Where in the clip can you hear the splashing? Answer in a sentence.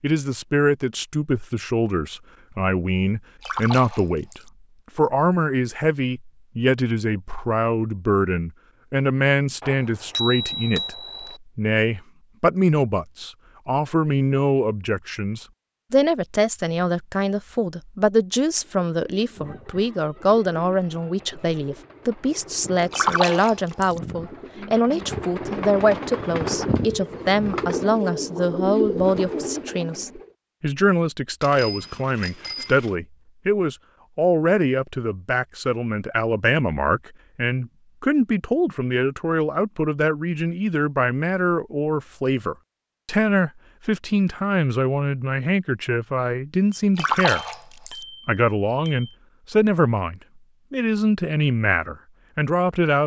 You can hear the splashing from 3.4 to 4.5 s, from 22.9 to 24.0 s and from 47.0 to 47.9 s.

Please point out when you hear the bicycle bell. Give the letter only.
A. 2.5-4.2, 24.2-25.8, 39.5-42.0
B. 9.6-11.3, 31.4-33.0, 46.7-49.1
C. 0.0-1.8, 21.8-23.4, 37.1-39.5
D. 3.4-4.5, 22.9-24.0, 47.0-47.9
B.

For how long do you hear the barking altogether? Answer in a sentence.
The barking can't be heard in this clip.